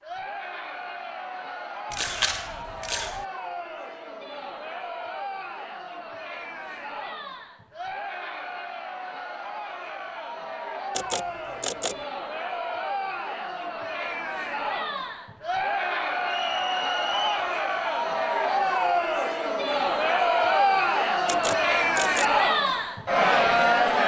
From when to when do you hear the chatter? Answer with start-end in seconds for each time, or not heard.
0.0-24.0.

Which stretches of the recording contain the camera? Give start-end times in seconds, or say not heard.
1.9-3.2, 10.9-12.1, 21.2-22.4.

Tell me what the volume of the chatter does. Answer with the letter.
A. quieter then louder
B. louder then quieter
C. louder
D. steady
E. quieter
C.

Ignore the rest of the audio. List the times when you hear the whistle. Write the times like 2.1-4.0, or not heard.
16.2-17.5.